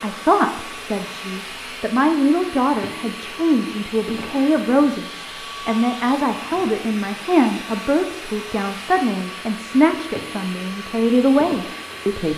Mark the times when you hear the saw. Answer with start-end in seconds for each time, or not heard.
not heard.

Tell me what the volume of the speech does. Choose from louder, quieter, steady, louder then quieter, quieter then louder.
steady.